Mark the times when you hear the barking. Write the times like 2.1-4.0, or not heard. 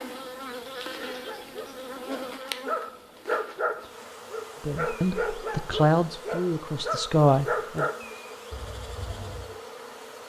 0.9-9.6.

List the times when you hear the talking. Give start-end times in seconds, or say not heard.
4.7-7.8.